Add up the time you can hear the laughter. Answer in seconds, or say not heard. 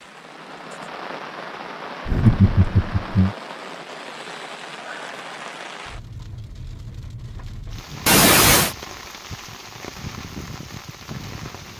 2 s.